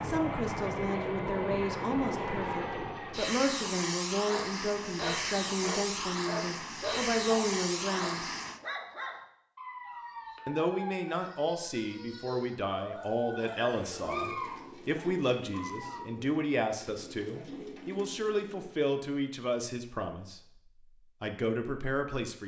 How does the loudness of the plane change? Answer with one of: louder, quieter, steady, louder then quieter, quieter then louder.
steady.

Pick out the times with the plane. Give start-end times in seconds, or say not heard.
0.0-8.6.